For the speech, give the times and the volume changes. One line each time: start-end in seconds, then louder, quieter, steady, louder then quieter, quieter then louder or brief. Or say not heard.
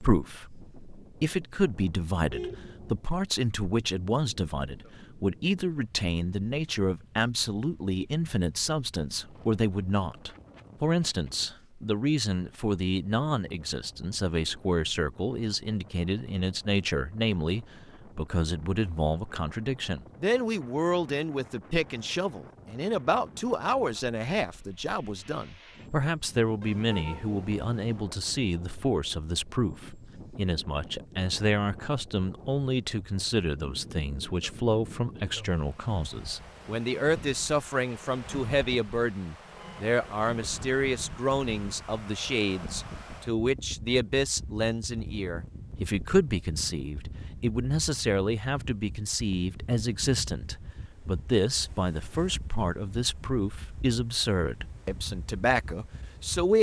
0.0-56.5 steady.